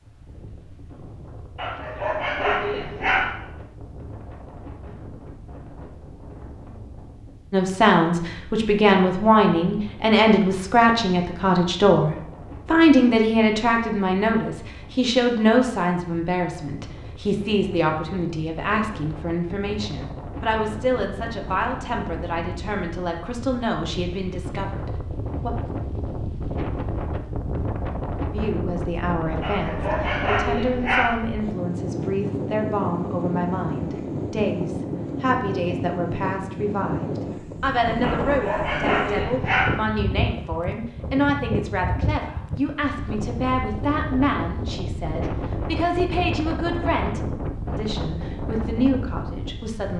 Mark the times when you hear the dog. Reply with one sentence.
The dog can be heard from 1.6 to 3.4 s, from 29.4 to 31.1 s and from 38.0 to 39.8 s.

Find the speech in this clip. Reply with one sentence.
You can hear the speech from 7.5 to 25.5 s and from 28.3 to 49.9 s.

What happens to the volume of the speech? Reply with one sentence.
The loudness of the speech goes down.